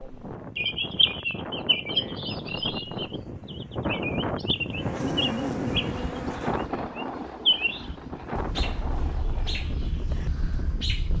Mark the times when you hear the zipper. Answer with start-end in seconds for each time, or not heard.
5.0-5.8.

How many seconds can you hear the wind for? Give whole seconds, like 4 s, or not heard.
11 s.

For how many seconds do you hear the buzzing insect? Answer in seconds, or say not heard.
2 s.